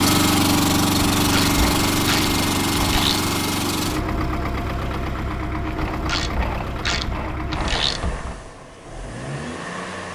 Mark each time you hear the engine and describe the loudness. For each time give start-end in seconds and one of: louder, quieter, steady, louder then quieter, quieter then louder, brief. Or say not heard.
0.0-10.1 quieter.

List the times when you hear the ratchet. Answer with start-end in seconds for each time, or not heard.
1.1-3.3, 5.8-8.4.